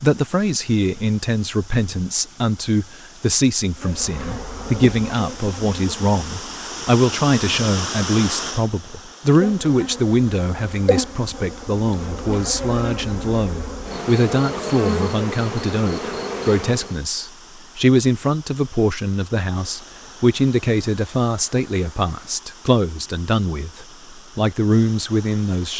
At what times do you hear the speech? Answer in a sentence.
You can hear the speech from 0.0 to 25.7 s.